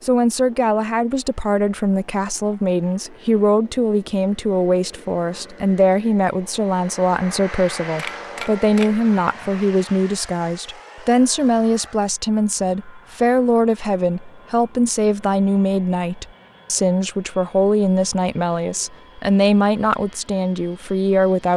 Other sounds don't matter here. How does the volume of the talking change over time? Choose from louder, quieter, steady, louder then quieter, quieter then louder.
steady.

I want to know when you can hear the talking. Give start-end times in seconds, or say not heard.
0.0-21.5.